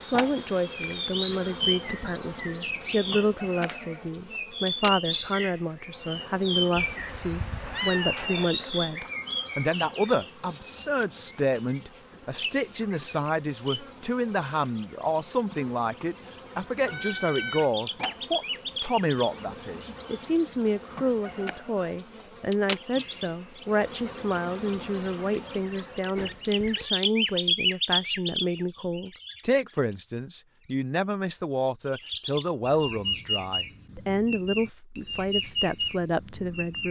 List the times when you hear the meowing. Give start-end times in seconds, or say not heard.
6.8-8.5, 16.9-17.7, 26.1-26.9.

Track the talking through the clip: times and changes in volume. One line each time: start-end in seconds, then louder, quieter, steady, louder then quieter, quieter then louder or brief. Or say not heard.
0.0-36.8 steady.